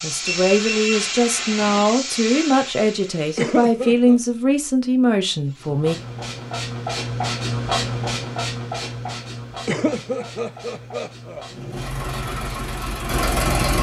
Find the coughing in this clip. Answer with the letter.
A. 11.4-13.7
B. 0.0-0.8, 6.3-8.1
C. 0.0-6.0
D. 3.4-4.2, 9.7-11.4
D.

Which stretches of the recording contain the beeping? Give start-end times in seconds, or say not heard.
0.2-1.6.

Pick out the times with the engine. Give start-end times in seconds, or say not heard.
11.4-13.7.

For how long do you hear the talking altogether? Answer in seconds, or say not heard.
6 s.